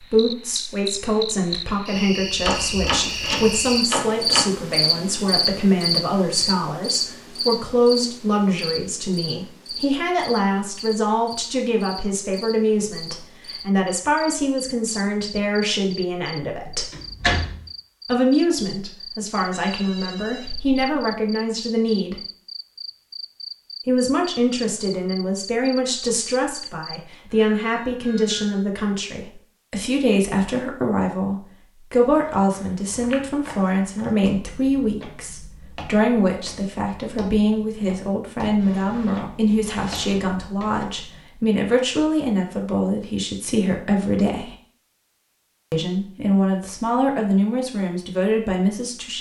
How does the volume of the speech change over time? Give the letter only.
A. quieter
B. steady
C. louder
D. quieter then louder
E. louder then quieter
B.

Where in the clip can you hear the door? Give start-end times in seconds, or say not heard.
2.4-4.5, 16.6-17.6, 38.6-40.9.